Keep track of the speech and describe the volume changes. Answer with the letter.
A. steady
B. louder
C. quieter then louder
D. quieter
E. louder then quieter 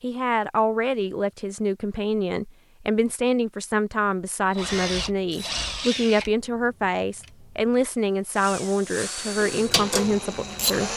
A.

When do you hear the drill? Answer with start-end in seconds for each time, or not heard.
4.5-10.9.